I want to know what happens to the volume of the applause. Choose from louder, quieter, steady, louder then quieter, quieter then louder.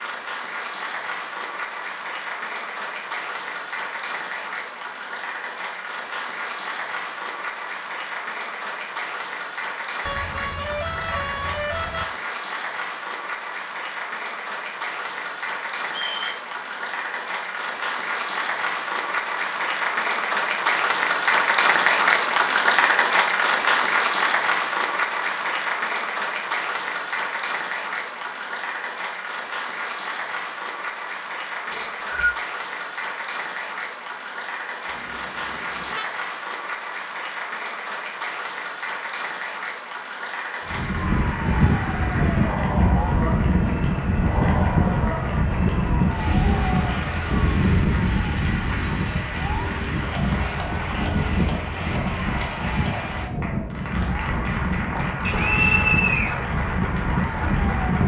louder then quieter.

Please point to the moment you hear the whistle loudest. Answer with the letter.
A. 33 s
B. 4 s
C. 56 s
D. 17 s
C.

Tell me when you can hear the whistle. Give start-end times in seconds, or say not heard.
15.8-16.4, 31.7-32.4, 55.2-56.4.